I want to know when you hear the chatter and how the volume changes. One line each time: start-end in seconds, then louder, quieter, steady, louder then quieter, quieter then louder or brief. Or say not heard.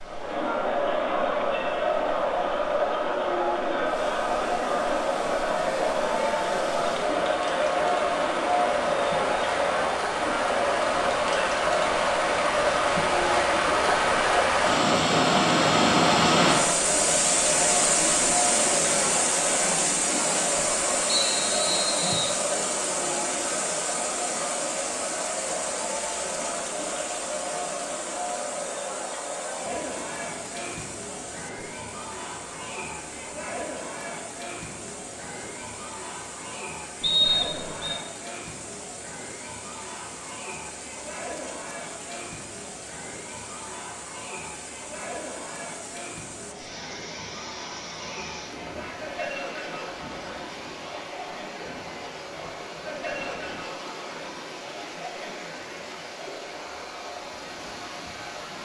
0.0-58.6 quieter.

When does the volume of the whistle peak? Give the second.
37 s.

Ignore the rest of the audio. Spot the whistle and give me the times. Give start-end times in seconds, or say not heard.
21.1-22.4, 37.0-38.0.